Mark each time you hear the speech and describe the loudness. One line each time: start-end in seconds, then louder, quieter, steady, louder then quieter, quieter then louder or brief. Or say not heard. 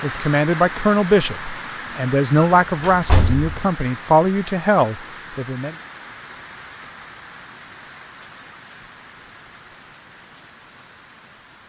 0.0-5.8 steady.